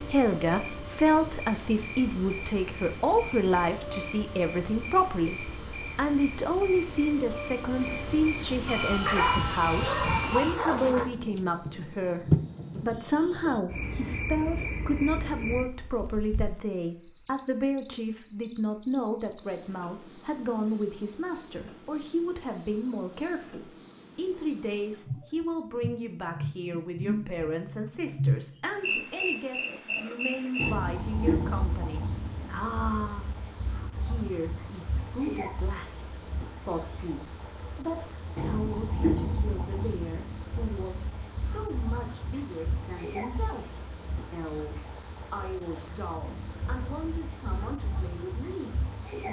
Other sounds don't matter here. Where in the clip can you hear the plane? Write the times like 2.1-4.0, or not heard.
8.7-10.6.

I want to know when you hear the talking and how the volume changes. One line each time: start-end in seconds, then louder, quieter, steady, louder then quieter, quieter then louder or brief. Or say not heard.
0.0-49.2 quieter.